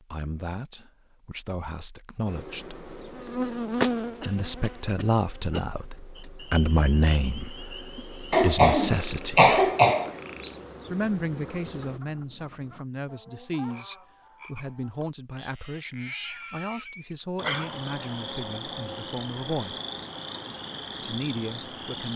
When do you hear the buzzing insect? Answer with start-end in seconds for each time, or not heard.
2.2-12.0.